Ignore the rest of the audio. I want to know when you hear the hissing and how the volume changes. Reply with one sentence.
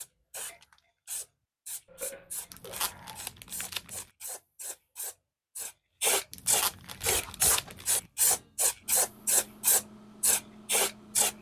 The hissing can be heard from 0.0 to 11.3 s, getting louder.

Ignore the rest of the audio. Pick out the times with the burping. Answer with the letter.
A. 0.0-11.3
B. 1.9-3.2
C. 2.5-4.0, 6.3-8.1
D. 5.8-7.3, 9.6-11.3
B.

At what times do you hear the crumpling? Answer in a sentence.
The crumpling can be heard from 2.5 to 4.0 s and from 6.3 to 8.1 s.